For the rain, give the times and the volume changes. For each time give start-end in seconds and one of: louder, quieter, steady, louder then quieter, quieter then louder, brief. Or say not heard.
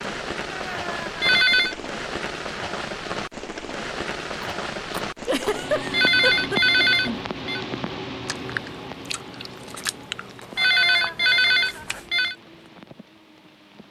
0.0-13.8 quieter.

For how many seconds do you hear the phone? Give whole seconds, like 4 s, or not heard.
4 s.